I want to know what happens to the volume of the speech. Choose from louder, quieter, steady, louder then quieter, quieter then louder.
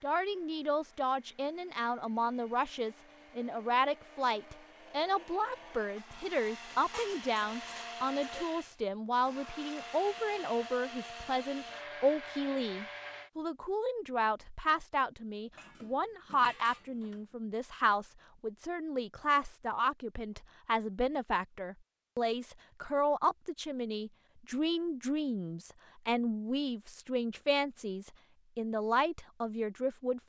steady.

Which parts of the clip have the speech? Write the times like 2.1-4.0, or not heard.
0.0-30.2.